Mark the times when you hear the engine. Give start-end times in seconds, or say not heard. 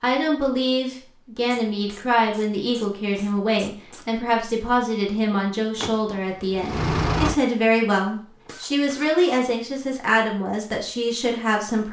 5.8-7.3.